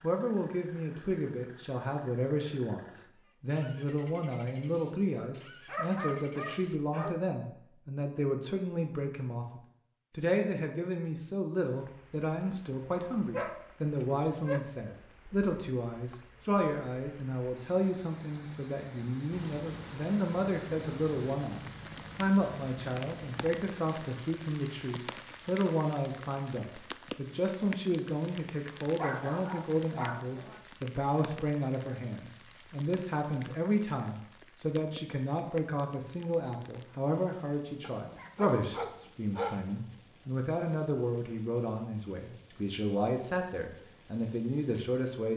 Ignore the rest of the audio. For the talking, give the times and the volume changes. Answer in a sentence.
The talking can be heard from 0.0 to 45.3 s, at a steady volume.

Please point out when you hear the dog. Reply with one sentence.
The dog can be heard from 5.7 to 7.2 s, from 13.3 to 14.6 s, from 28.9 to 30.6 s and from 37.8 to 39.6 s.